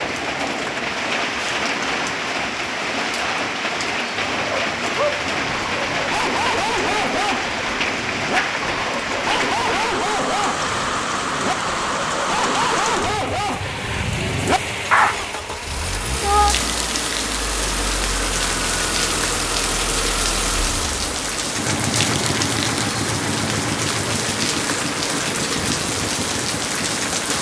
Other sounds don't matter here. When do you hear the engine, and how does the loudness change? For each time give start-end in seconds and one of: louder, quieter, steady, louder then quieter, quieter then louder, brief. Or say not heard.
14.9-27.3 steady.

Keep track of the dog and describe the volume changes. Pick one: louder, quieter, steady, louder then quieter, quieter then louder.
steady.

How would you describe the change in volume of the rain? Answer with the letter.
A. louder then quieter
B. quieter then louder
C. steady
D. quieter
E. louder
C.